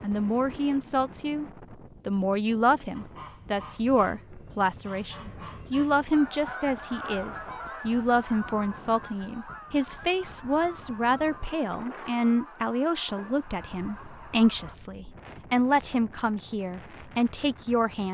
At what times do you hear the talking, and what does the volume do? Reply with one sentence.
You can hear the talking briefly from 0.0 to 1.4 s; and from 2.0 to 18.0 s, at a steady volume.